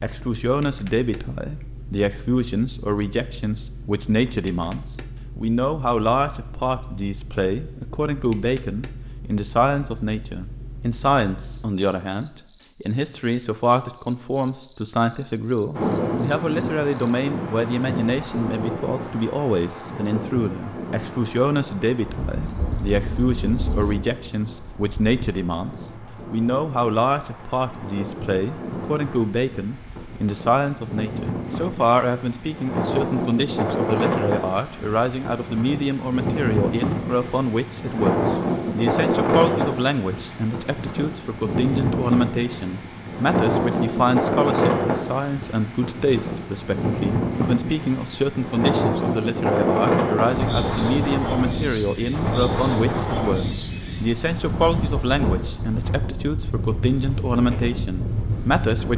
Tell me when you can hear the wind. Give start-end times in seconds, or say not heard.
15.7-58.9.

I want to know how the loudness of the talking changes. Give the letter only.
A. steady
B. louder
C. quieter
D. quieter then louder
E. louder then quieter
A.